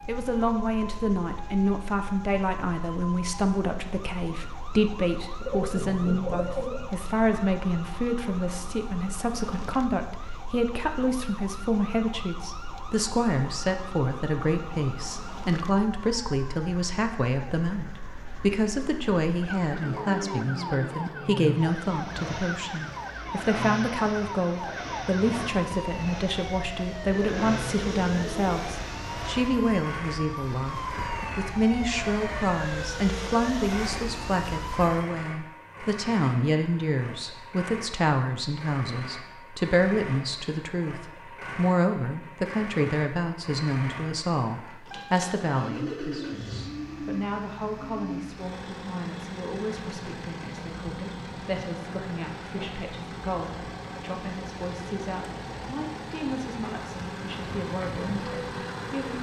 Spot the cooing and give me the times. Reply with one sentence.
The cooing can be heard from 5.3 to 6.9 s, from 27.1 to 28.6 s and from 45.7 to 48.3 s.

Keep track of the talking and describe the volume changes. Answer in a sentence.
The loudness of the talking goes down.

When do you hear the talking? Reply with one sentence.
The talking can be heard from 0.1 to 59.1 s.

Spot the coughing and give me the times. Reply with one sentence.
The coughing can't be heard in this clip.